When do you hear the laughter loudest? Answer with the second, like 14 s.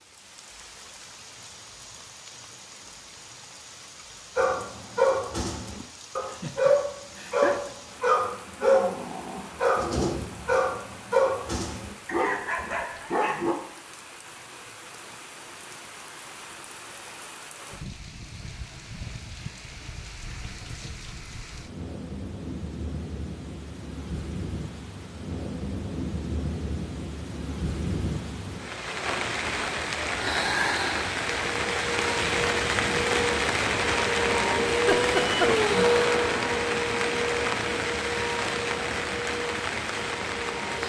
35 s.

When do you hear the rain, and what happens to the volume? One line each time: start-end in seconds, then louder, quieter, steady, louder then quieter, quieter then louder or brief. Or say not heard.
0.0-40.8 louder.